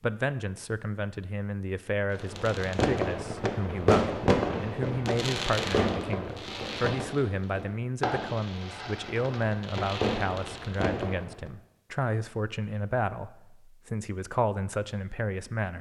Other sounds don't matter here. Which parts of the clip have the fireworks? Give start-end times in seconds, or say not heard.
2.1-11.5.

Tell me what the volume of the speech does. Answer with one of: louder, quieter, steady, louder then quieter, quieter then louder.
steady.